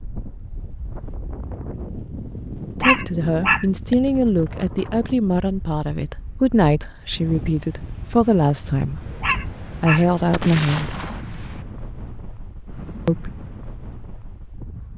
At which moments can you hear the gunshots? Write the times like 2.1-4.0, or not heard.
10.3-11.7.